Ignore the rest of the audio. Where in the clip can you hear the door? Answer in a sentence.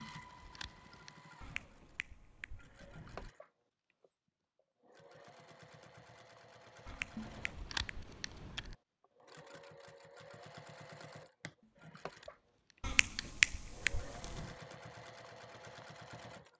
You can't hear the door here.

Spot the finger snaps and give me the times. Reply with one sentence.
You can hear the finger snaps from 1.4 to 3.3 s, from 6.8 to 8.8 s and from 12.8 to 14.5 s.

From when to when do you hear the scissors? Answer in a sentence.
The scissors can be heard from 0.0 to 1.1 s, from 7.2 to 8.8 s and from 12.2 to 13.3 s.